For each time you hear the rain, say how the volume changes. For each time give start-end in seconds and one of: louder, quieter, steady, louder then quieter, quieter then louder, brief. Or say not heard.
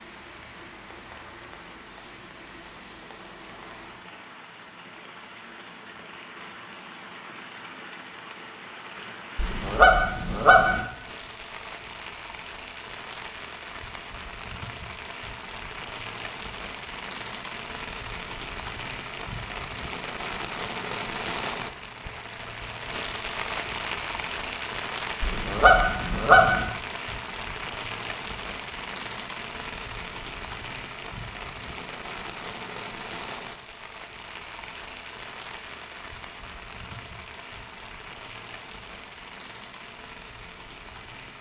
0.0-41.3 louder then quieter.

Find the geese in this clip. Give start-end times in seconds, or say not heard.
9.3-10.8, 25.2-26.6.